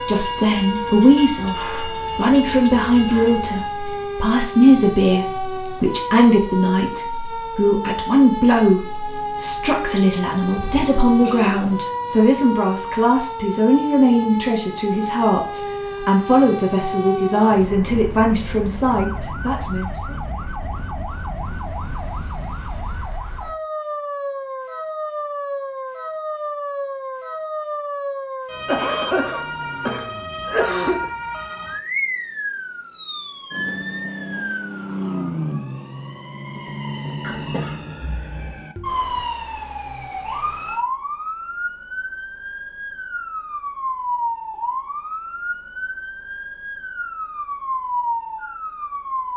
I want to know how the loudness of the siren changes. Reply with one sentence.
The loudness of the siren stays about the same.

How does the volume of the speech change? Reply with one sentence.
The loudness of the speech stays about the same.